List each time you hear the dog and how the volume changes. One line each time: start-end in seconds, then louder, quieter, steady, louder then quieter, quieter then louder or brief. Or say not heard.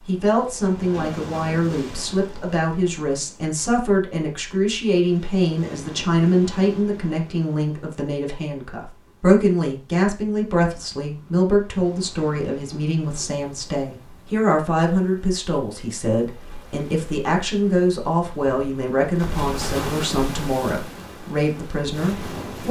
not heard.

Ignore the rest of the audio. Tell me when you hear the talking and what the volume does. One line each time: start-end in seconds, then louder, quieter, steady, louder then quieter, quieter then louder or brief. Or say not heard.
0.1-22.6 steady.